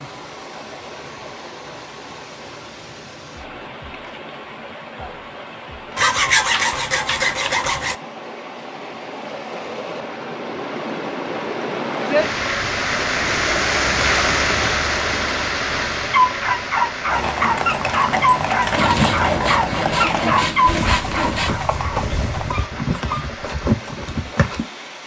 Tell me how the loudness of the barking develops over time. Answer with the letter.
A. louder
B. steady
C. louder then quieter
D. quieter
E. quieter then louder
D.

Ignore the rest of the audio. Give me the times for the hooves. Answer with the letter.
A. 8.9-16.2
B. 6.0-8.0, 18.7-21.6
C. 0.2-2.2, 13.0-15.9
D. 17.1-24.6
D.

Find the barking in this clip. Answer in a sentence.
The barking can be heard from 16.1 to 23.4 s.